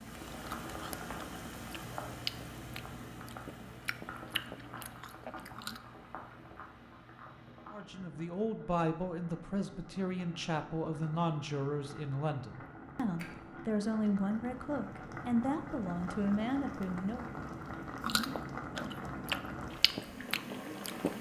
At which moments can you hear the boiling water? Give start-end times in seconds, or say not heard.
0.0-21.1.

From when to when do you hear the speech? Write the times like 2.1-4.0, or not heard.
7.7-17.2.